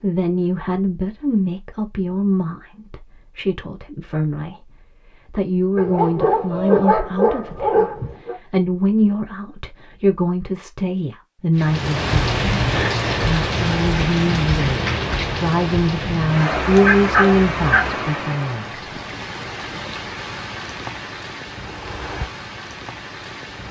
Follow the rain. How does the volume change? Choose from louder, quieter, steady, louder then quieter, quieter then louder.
quieter.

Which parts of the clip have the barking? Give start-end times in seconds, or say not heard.
5.8-8.3, 16.4-17.9.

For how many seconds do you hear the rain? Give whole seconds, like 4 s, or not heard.
12 s.